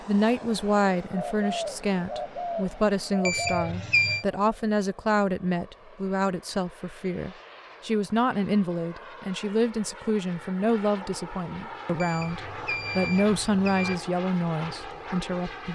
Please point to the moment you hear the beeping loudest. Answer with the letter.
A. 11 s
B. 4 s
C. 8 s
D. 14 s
B.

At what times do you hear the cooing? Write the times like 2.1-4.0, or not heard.
1.1-3.7.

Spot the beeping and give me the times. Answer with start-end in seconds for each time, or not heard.
3.2-4.2, 11.9-13.9.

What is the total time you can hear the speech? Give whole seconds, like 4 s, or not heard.
16 s.